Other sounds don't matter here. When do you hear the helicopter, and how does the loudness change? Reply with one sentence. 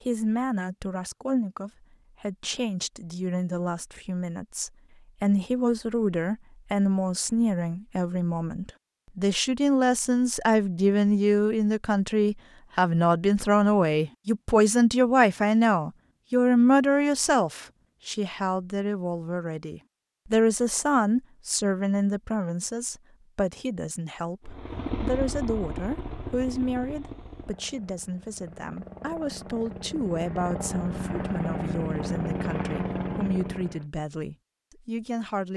The helicopter can be heard from 24.4 to 33.9 s, getting quieter then louder.